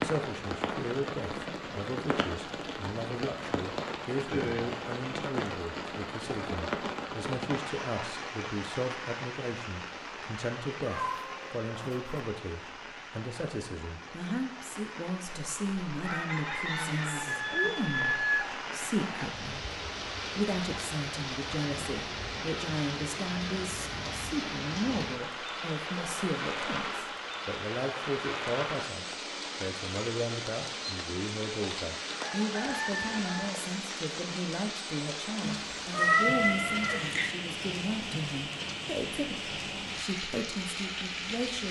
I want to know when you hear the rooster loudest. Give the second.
18 s.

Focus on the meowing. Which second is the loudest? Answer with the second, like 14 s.
36 s.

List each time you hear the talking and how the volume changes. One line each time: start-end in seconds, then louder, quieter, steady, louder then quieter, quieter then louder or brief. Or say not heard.
0.0-41.6 steady.